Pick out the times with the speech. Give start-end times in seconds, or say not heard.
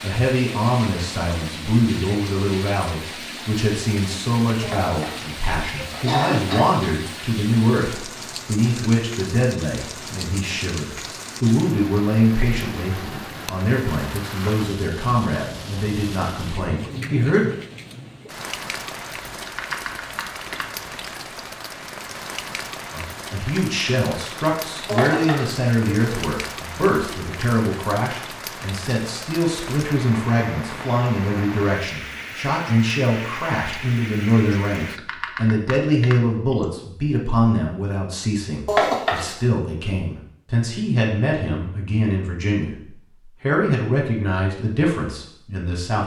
0.0-17.5, 22.9-46.0.